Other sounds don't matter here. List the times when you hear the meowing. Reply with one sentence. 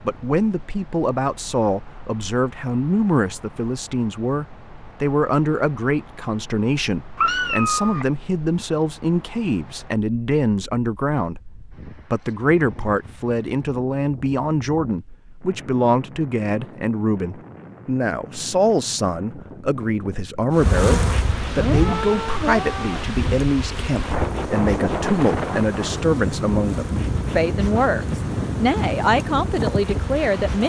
The meowing can be heard from 7.2 to 8.1 s and from 21.3 to 23.1 s.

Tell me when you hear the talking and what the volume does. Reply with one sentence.
You can hear the talking from 0.1 to 30.6 s, at a steady volume.